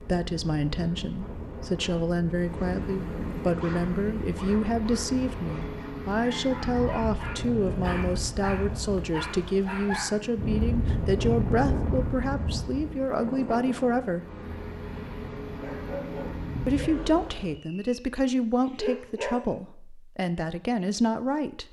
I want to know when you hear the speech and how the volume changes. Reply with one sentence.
You can hear the speech from 0.0 to 14.2 s, at a steady volume; and from 16.6 to 21.6 s, getting quieter then louder.